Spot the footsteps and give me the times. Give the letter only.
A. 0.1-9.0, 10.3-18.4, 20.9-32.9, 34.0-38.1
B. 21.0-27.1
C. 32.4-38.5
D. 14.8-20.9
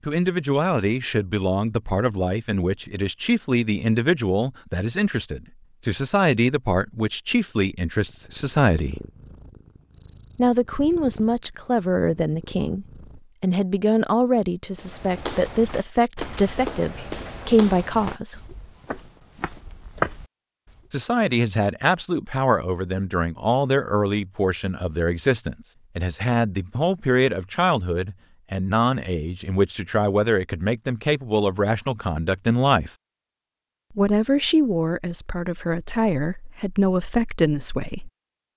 D.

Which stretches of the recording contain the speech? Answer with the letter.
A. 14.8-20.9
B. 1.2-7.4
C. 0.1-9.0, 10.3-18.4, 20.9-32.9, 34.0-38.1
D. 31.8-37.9
C.